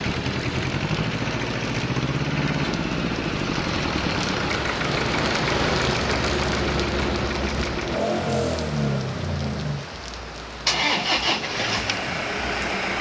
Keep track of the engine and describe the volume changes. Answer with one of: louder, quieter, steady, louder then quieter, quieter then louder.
steady.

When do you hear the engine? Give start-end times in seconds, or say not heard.
0.0-12.9.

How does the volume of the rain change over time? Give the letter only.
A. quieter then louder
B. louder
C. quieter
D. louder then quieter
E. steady
D.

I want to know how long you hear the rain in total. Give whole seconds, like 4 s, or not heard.
13 s.